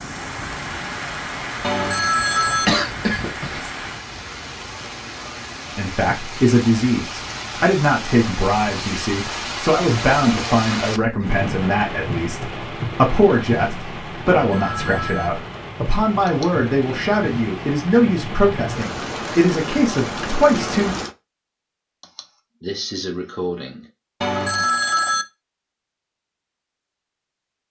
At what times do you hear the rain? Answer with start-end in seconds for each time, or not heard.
0.0-21.1.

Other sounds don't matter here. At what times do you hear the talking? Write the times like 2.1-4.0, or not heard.
5.8-20.9.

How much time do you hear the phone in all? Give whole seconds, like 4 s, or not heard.
3 s.